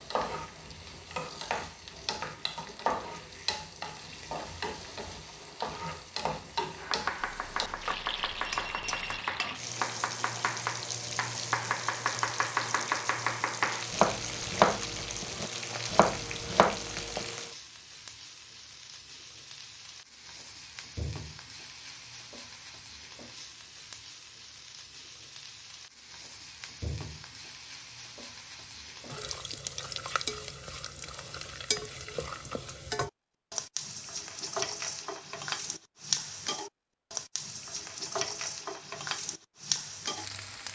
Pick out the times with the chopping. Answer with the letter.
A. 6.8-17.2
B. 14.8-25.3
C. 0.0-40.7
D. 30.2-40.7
A.